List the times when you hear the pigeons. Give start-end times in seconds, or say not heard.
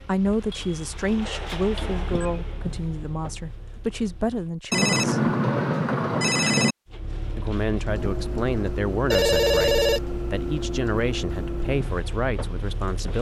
not heard.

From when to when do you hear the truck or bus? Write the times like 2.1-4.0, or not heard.
0.0-4.6, 6.8-13.1.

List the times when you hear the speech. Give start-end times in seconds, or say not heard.
0.0-5.3, 7.3-13.1.